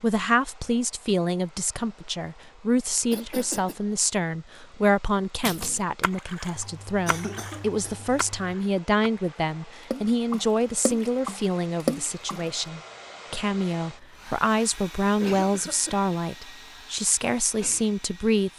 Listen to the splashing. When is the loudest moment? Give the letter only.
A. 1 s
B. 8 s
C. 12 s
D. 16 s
C.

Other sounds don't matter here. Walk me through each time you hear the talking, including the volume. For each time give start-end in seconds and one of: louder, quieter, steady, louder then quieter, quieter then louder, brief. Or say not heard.
0.0-18.5 steady.